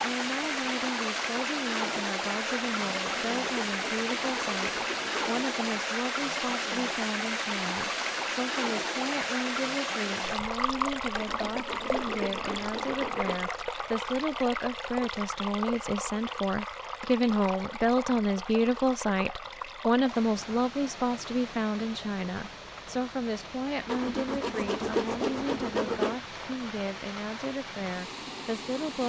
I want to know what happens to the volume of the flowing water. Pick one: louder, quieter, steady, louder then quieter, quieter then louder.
quieter.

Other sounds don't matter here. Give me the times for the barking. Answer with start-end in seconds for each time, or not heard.
not heard.